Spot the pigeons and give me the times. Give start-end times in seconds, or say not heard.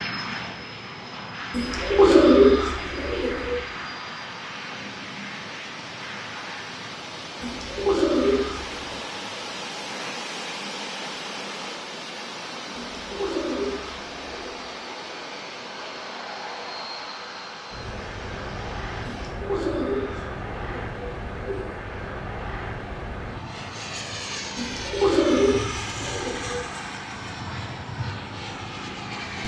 1.5-3.6, 7.4-8.8, 12.9-14.6, 19.1-21.6, 24.6-26.6.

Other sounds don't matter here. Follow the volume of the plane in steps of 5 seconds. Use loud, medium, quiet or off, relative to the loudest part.
loud, medium, medium, loud, loud, loud.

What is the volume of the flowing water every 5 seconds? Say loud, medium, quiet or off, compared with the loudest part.
medium, loud, loud, medium, off, off.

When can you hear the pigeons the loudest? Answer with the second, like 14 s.
2 s.